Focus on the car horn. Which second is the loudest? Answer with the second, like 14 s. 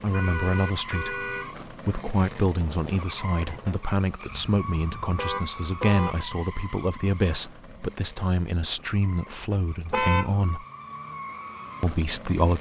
10 s.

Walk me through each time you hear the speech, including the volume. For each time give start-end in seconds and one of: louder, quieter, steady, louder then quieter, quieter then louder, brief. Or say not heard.
0.0-10.7 steady
11.8-12.5 brief.